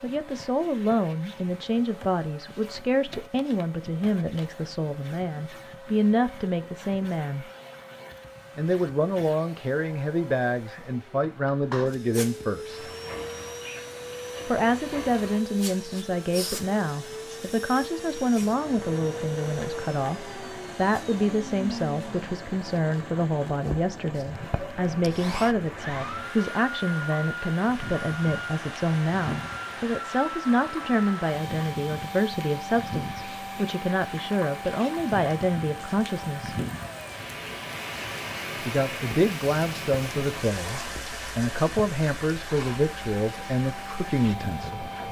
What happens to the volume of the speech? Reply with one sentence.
The volume of the speech stays about the same.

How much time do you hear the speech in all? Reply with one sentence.
You can hear the speech for 40 seconds altogether.